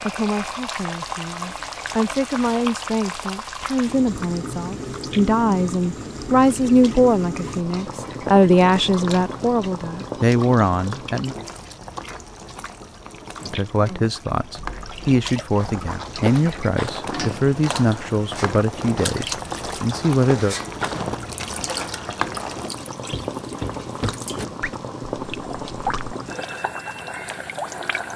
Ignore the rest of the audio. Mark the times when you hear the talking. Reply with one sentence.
You can hear the talking from 0.0 to 11.3 s and from 13.4 to 20.6 s.